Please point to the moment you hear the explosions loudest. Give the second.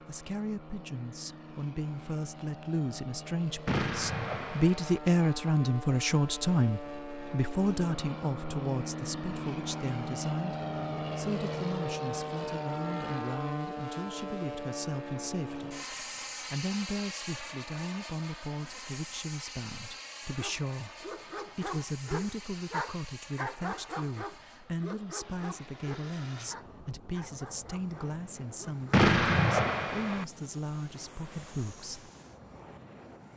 29 s.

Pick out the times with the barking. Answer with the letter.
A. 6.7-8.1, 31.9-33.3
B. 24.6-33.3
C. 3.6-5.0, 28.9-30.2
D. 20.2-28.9
D.